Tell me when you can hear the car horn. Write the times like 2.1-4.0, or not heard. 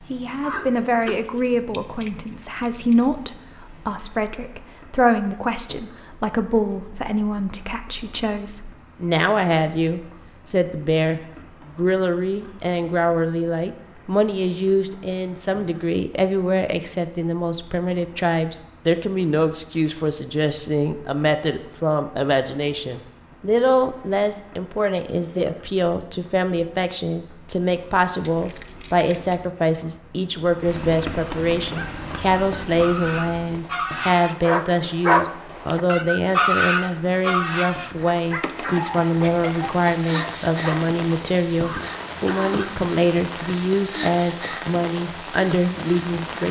not heard.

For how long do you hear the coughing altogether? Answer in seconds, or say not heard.
2 s.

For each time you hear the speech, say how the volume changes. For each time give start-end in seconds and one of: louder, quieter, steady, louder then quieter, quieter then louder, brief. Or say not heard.
0.1-46.4 steady.